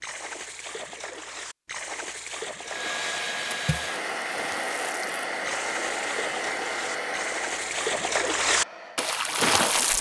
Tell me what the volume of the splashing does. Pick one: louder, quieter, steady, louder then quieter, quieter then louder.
louder.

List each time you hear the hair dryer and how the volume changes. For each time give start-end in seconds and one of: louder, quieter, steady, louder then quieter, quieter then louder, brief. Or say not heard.
2.6-9.9 quieter.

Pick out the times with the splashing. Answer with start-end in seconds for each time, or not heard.
0.0-9.9.